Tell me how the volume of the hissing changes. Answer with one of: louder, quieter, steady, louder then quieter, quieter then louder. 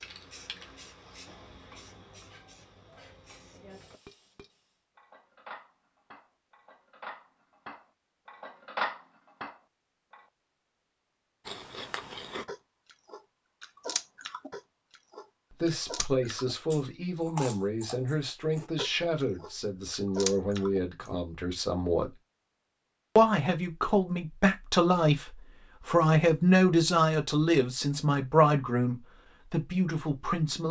quieter.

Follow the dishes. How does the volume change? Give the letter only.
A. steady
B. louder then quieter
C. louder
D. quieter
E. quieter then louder
C.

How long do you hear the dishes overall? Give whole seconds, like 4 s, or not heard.
9 s.